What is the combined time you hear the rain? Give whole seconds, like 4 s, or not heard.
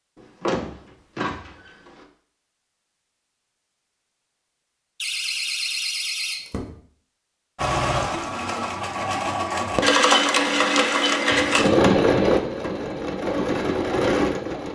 not heard.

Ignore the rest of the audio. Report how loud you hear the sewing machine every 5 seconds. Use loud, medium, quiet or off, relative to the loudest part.
off, loud, loud.